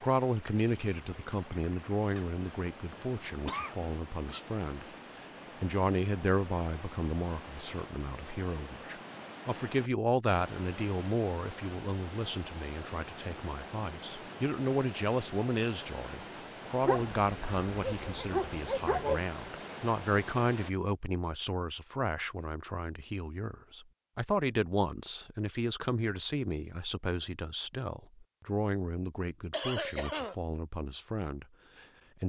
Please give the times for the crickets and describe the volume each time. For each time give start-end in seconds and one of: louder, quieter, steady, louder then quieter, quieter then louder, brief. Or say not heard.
not heard.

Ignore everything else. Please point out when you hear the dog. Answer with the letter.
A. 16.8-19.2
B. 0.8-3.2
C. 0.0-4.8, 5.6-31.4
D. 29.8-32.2
A.